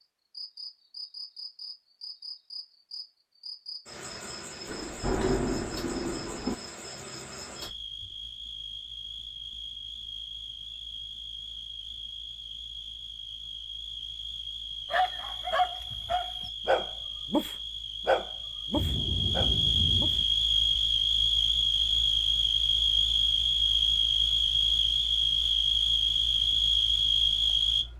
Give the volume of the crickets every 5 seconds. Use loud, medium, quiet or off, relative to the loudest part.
quiet, quiet, quiet, medium, loud, loud.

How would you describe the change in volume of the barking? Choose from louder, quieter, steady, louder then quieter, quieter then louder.
quieter.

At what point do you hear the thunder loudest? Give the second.
5 s.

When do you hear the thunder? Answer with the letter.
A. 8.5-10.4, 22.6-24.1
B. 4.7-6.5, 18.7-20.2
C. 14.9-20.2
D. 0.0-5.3
B.